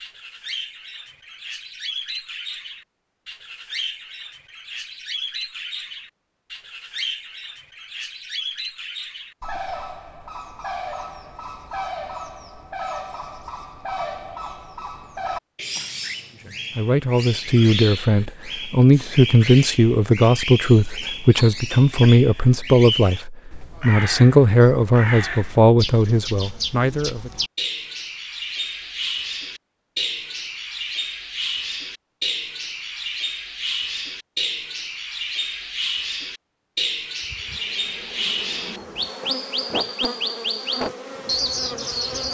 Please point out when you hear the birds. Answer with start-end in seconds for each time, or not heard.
0.0-42.2.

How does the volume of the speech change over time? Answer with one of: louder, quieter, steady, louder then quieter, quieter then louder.
steady.